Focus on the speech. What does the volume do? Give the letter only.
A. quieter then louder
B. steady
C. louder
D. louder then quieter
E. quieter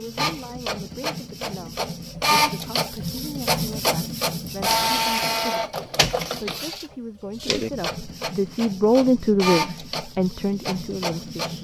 D.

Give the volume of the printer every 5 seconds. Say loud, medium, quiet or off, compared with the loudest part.
loud, loud, medium.